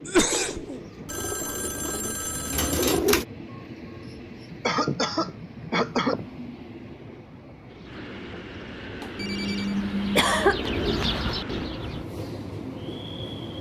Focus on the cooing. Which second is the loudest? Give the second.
3 s.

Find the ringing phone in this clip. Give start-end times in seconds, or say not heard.
1.1-3.0, 9.0-9.8.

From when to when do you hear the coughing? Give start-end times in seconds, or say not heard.
0.1-0.7, 4.7-6.2, 9.2-10.7.